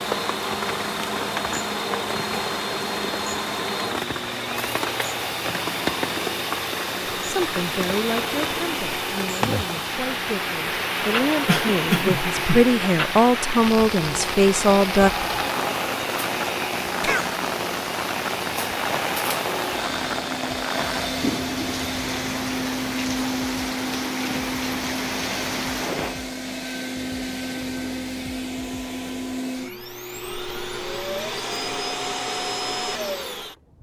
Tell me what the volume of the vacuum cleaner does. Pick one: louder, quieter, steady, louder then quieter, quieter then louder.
steady.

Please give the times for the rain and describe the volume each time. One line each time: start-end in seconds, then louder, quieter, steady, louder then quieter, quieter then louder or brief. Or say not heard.
0.0-26.1 steady.